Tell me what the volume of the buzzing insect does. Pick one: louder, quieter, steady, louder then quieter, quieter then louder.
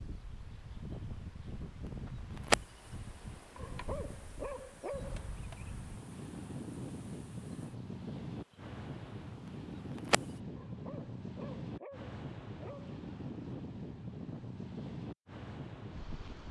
louder then quieter.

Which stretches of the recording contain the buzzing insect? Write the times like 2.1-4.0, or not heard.
0.0-10.4.